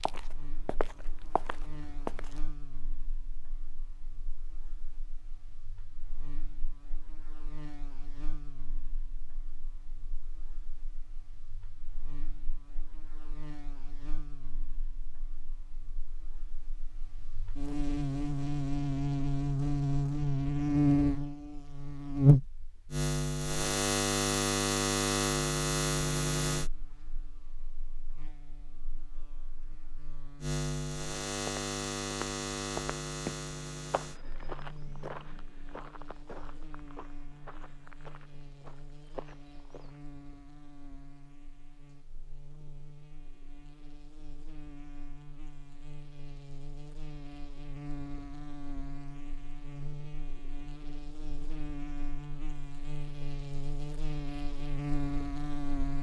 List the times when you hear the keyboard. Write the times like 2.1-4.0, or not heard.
not heard.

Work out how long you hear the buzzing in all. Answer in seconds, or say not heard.
56 s.